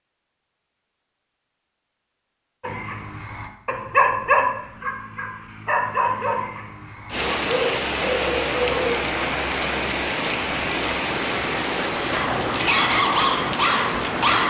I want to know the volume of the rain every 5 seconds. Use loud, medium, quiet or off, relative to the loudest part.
off, loud, loud.